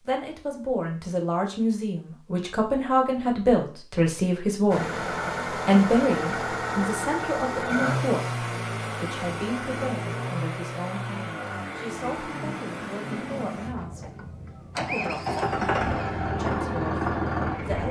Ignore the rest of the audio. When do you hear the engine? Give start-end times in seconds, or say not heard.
4.7-17.8.